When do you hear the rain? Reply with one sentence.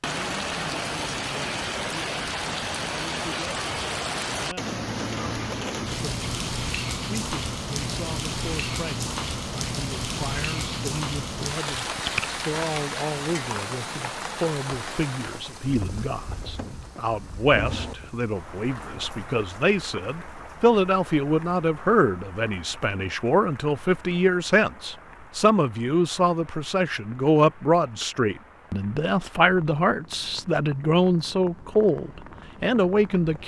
You can hear the rain from 0.0 to 33.4 s.